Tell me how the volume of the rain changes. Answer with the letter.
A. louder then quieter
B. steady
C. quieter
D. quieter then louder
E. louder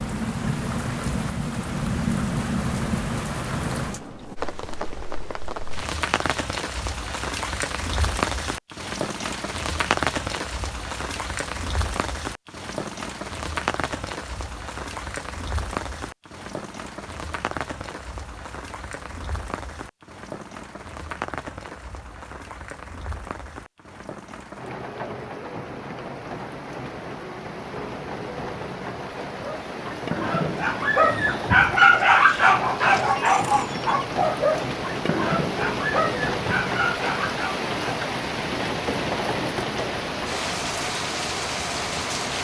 D.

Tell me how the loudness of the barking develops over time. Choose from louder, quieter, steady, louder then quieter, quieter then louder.
louder then quieter.